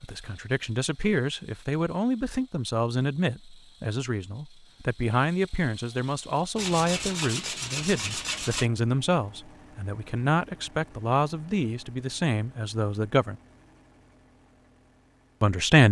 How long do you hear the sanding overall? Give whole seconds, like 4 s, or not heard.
2 s.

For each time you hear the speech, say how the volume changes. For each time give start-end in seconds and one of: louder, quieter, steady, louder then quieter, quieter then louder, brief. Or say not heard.
0.0-13.3 steady
15.4-15.8 brief.